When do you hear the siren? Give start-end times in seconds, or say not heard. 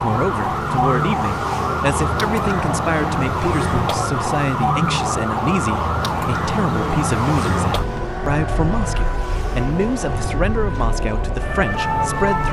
0.0-12.4.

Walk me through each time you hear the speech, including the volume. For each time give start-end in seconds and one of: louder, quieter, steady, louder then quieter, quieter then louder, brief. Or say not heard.
0.0-12.4 steady.